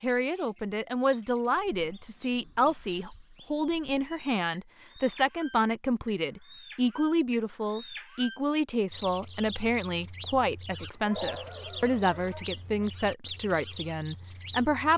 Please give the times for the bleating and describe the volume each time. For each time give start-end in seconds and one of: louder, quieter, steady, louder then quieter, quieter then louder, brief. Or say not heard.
not heard.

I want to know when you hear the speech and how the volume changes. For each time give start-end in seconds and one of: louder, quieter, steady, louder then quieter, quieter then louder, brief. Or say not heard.
0.0-14.9 steady.